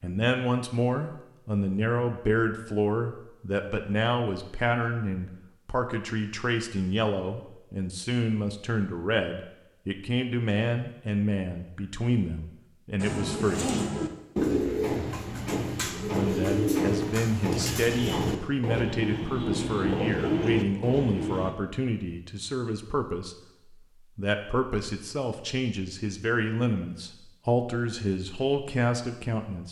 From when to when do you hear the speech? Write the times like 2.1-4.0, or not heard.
0.0-13.8, 16.1-29.6.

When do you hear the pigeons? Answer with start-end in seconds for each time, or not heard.
13.0-21.6.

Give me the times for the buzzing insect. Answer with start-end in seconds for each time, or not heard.
not heard.